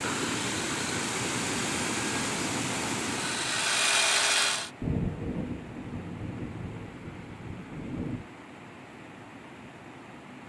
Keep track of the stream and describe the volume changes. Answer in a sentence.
The volume of the stream goes down.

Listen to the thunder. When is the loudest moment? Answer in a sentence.
The loudest moment of the thunder is at 5 seconds.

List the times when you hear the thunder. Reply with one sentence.
The thunder can be heard from 4.8 to 8.3 s.